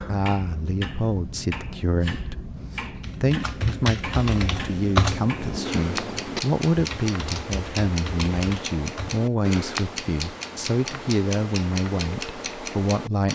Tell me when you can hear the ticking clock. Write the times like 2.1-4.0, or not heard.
0.0-13.3.